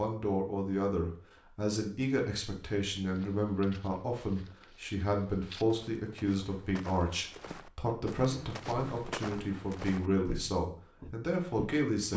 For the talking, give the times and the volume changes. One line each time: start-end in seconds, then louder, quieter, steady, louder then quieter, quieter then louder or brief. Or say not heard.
0.0-12.1 steady.